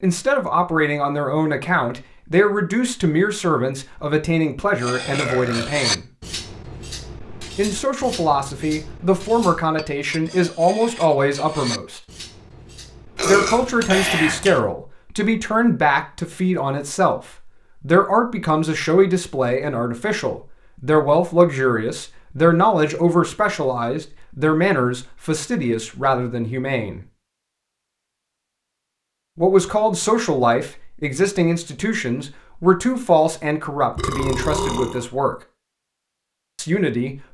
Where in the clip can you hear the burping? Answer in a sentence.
You can hear the burping from 5.0 to 5.7 s, from 13.2 to 14.6 s and from 34.0 to 35.0 s.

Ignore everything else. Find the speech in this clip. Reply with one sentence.
The speech can be heard from 0.0 to 6.0 s, from 7.5 to 12.0 s, from 13.2 to 27.0 s, from 29.4 to 35.4 s and from 36.5 to 37.2 s.